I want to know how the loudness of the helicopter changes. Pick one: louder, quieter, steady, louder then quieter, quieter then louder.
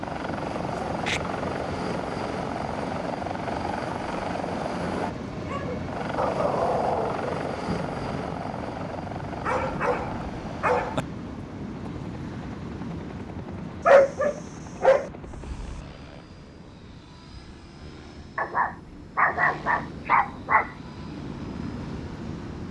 quieter.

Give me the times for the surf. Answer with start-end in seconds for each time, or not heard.
0.0-22.6.